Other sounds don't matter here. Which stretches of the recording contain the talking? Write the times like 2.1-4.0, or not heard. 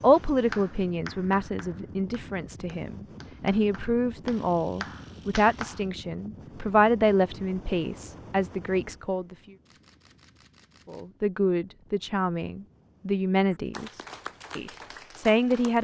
0.0-9.3, 10.8-15.7.